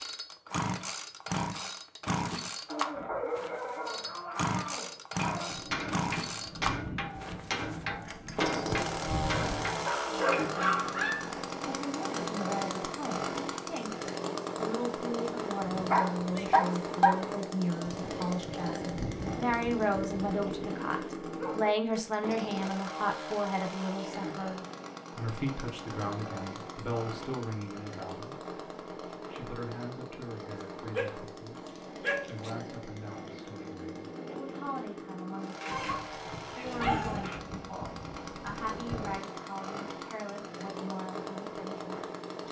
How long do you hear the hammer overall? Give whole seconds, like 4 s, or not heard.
5 s.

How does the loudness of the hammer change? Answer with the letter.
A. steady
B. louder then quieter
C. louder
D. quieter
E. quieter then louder
A.